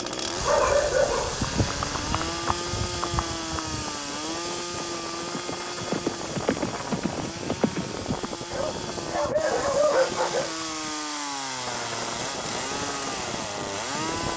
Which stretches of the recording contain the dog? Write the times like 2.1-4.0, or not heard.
0.4-2.3, 8.5-10.6.